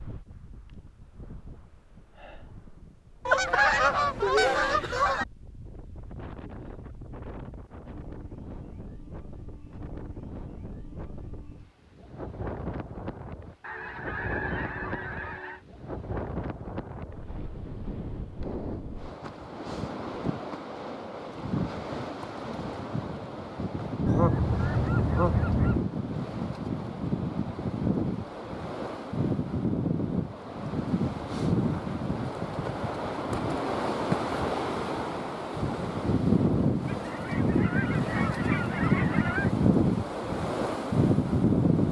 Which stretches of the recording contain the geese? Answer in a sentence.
You can hear the geese from 3.2 to 5.2 s, from 13.6 to 15.6 s, from 24.1 to 25.9 s and from 36.9 to 39.5 s.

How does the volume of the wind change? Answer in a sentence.
The volume of the wind goes up.